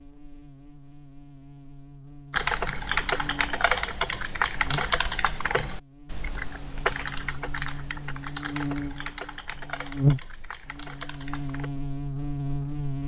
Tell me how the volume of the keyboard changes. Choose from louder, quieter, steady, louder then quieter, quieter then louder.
quieter.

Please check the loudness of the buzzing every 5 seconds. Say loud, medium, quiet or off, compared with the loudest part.
quiet, medium, loud.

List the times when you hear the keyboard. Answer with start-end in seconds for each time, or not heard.
2.3-11.7.